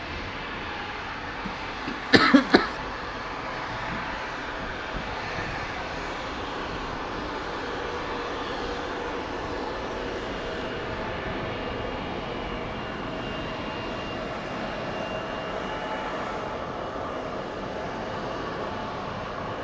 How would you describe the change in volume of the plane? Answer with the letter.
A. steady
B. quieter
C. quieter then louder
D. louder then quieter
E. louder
A.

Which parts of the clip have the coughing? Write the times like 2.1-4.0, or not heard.
1.4-2.7.